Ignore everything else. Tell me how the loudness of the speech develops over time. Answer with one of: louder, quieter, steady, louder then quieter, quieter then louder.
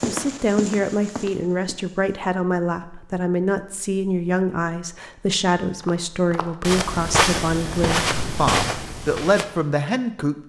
steady.